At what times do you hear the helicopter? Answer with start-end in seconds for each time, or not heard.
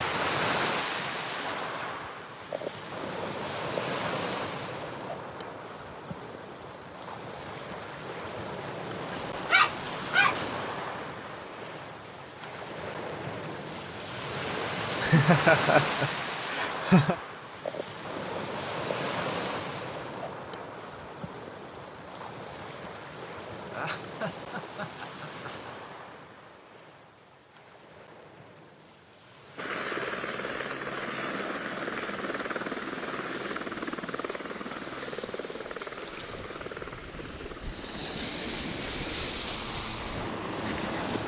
29.6-41.2.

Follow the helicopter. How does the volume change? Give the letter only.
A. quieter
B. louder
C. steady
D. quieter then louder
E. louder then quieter
A.